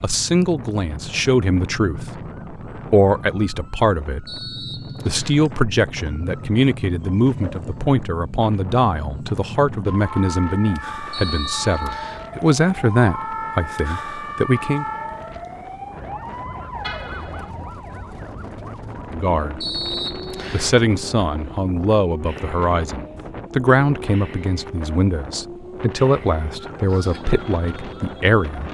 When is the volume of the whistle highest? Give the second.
20 s.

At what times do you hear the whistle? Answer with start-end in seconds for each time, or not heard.
4.2-5.3, 11.1-12.2, 19.6-20.8.